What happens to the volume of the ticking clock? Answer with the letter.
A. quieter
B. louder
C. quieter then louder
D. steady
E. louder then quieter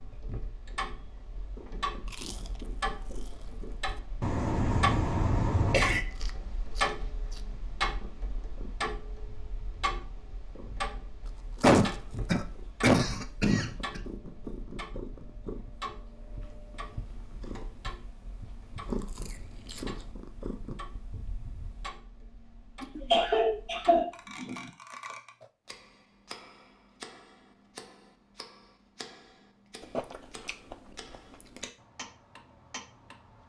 A.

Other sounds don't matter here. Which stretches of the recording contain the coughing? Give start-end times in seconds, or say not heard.
4.2-6.0, 11.6-14.0, 22.8-24.7.